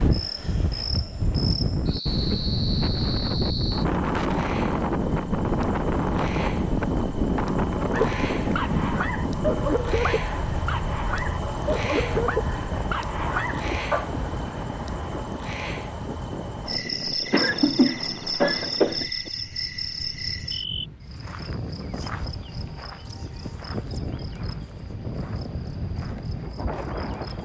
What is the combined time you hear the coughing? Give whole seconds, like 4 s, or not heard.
2 s.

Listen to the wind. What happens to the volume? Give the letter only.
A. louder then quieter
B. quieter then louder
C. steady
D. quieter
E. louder
D.